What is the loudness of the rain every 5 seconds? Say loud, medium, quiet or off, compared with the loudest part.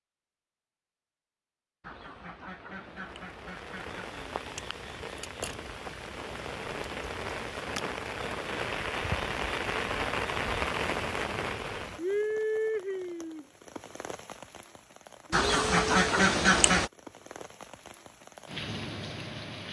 medium, loud, loud, medium.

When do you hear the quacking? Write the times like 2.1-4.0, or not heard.
1.8-4.2, 15.3-16.9.